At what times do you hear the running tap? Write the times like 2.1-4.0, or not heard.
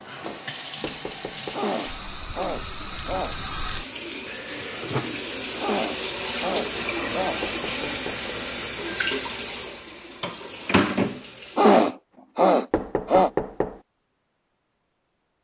0.0-11.9.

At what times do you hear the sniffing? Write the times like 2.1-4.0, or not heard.
1.5-3.4, 5.6-7.4, 11.6-13.3.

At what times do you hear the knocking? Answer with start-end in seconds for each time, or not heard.
0.8-1.6, 7.4-8.3, 12.7-13.8.